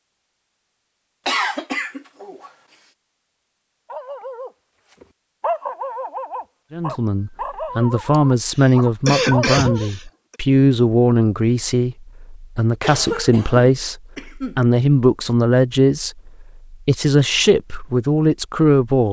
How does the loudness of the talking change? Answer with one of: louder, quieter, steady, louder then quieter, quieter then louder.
steady.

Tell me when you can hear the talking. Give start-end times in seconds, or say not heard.
6.7-19.0.